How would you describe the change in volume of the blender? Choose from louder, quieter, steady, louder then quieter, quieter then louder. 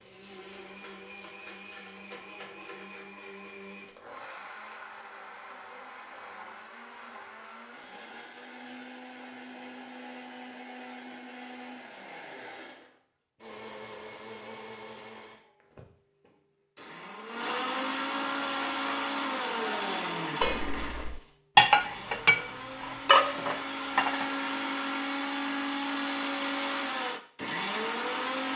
louder.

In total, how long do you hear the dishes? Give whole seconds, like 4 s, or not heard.
6 s.